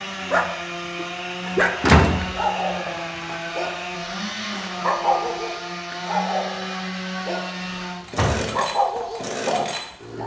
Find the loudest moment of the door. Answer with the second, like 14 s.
2 s.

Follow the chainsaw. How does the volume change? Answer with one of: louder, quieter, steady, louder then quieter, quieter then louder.
steady.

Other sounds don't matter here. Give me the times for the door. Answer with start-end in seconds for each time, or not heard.
1.5-3.4, 7.5-8.6.